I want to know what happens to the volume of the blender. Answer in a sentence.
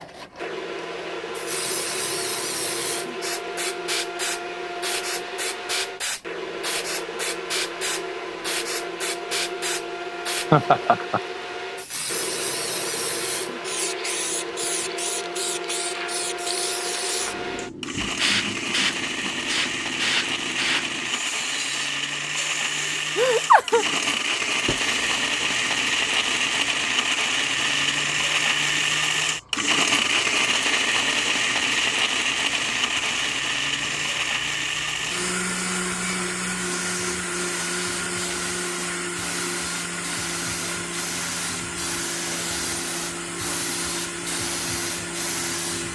The loudness of the blender goes up, then down.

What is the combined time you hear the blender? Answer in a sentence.
You can hear the blender for 46 seconds altogether.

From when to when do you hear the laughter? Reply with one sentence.
The laughter can be heard from 10.5 to 11.2 s and from 23.1 to 23.9 s.